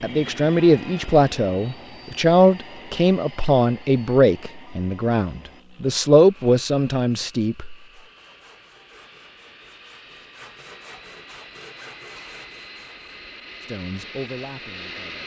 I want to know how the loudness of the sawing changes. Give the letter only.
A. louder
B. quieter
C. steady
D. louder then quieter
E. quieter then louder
A.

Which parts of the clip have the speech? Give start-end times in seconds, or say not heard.
0.0-7.8, 13.6-15.2.